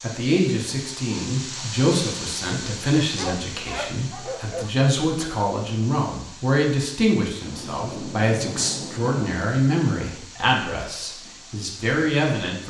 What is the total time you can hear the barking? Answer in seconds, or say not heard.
2 s.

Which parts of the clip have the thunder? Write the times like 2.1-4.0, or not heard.
7.5-9.4.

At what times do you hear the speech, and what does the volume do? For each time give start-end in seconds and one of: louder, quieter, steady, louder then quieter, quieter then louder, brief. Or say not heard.
0.0-12.6 steady.